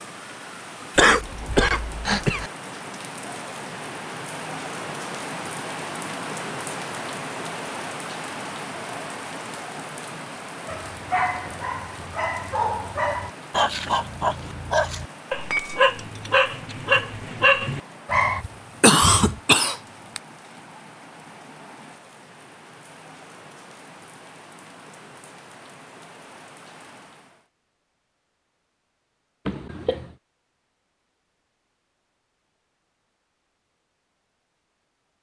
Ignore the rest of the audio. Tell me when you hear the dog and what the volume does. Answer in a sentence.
The dog can be heard from 10.7 to 18.4 s, getting louder.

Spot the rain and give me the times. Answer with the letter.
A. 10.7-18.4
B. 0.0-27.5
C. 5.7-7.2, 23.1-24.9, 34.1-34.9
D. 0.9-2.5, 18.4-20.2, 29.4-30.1
B.